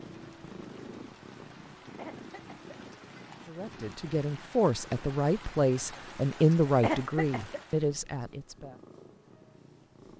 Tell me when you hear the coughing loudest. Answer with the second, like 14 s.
7 s.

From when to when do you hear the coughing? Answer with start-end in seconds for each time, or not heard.
1.8-3.1, 6.7-7.6.